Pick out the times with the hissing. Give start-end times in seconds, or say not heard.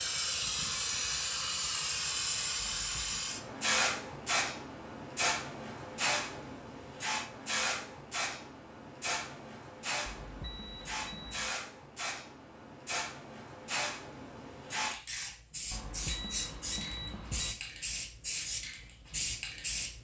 0.0-19.9.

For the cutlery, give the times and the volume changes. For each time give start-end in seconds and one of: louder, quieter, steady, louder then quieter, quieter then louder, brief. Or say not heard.
not heard.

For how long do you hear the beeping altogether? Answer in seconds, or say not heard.
4 s.